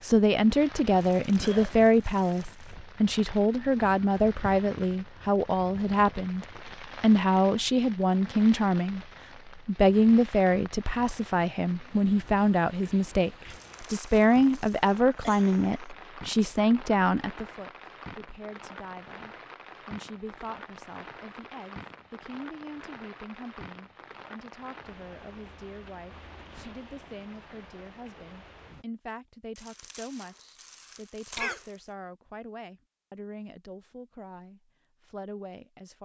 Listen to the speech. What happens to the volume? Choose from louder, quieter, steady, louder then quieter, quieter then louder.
quieter.